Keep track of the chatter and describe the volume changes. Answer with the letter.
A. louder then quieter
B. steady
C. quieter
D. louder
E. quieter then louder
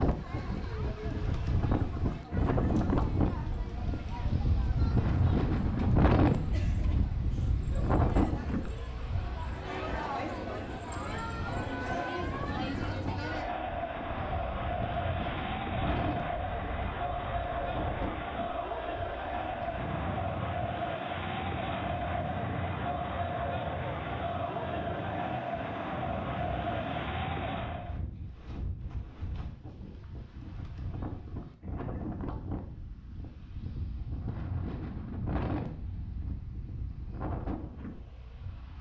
D.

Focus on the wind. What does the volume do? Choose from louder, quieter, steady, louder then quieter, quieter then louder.
quieter.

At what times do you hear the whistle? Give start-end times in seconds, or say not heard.
not heard.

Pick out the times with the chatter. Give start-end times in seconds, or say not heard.
0.0-28.0.